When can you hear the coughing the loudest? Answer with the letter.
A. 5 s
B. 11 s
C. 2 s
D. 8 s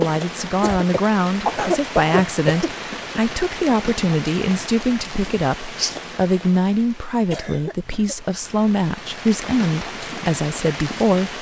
C.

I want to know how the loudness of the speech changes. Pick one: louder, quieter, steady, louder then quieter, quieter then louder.
steady.